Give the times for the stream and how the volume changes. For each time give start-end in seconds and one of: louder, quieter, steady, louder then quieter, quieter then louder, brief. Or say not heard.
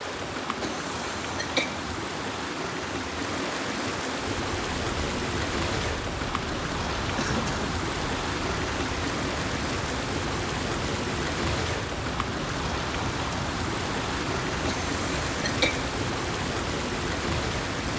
0.0-17.9 steady.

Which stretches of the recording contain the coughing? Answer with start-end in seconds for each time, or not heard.
0.6-1.9, 7.2-7.8, 14.7-15.9.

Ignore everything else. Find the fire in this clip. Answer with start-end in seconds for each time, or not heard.
4.3-17.9.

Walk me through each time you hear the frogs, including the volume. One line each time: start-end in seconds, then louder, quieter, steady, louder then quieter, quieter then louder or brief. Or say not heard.
not heard.